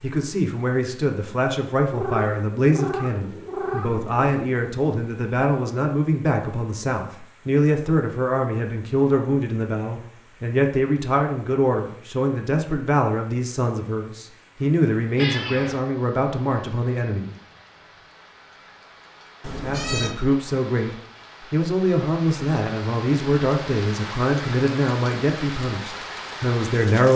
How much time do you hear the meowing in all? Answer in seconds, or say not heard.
4 s.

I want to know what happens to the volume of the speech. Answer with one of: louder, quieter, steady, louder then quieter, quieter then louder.
steady.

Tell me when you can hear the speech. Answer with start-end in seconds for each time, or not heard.
0.0-17.4, 19.6-27.1.